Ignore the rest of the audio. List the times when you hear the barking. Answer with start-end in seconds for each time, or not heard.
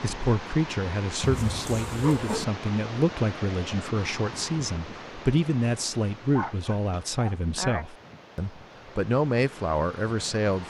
1.2-2.5, 6.3-7.8.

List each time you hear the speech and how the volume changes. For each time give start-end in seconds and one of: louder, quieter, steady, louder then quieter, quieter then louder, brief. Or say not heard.
0.0-10.6 steady.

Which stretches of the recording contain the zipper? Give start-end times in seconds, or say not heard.
not heard.